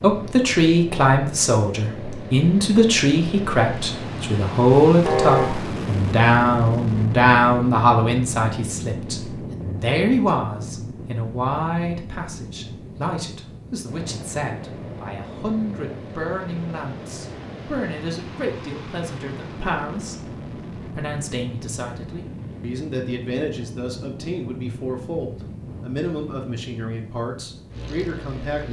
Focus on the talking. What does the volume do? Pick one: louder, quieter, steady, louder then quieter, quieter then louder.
quieter.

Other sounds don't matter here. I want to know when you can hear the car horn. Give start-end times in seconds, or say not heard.
5.0-5.6.